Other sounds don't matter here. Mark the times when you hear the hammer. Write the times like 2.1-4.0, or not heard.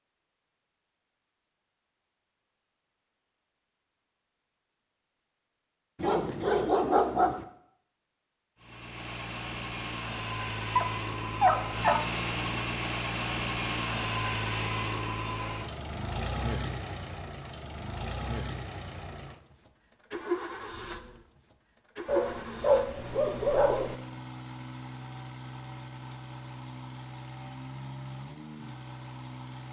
not heard.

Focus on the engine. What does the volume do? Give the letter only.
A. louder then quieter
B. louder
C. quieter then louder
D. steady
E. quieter
E.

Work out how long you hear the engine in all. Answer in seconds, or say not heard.
21 s.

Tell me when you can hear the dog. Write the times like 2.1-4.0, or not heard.
6.0-7.5, 10.8-12.1, 22.1-23.9.